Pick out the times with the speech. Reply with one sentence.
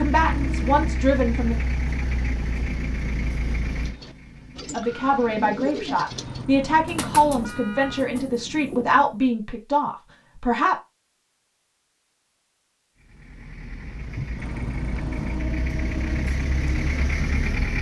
The speech can be heard from 0.0 to 1.6 s and from 4.7 to 10.8 s.